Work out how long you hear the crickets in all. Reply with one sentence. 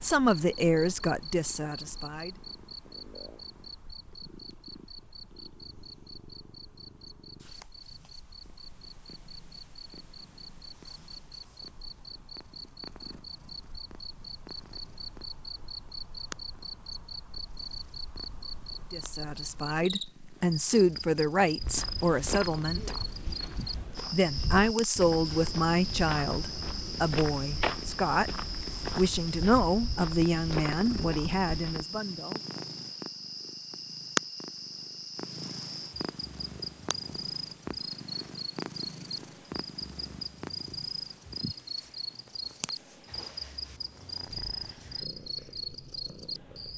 The crickets can be heard for 47 seconds in total.